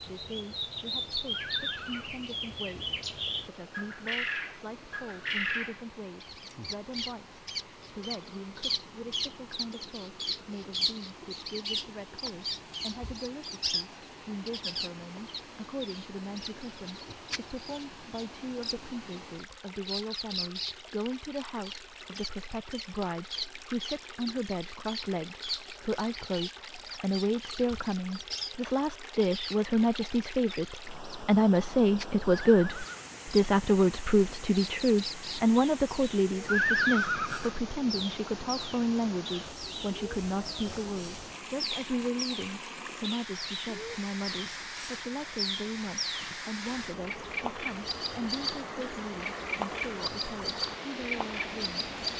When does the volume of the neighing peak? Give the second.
37 s.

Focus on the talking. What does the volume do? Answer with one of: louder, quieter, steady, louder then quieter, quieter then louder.
louder then quieter.